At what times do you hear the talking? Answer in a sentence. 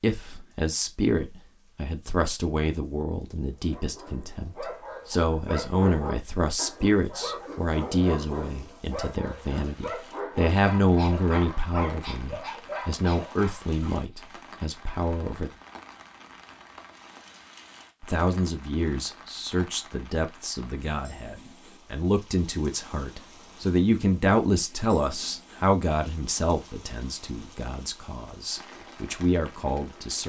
The talking can be heard from 0.0 to 15.5 s and from 18.0 to 30.2 s.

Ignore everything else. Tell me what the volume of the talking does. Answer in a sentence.
The volume of the talking stays about the same.